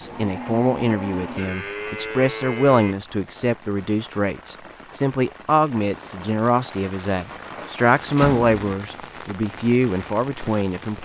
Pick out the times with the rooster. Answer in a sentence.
The rooster can't be heard in this clip.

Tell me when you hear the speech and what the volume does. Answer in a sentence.
The speech can be heard from 0.0 to 10.9 s, at a steady volume.